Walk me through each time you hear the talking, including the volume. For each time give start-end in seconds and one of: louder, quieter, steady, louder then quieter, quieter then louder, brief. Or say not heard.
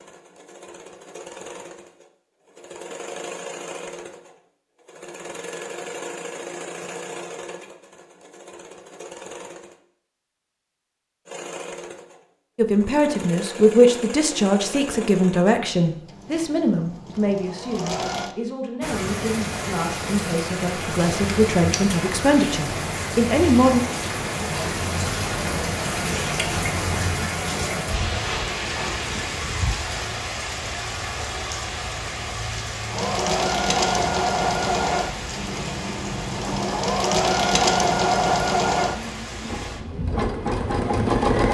12.6-23.8 quieter then louder.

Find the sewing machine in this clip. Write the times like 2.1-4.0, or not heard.
0.0-9.8, 11.2-18.4, 32.9-41.4.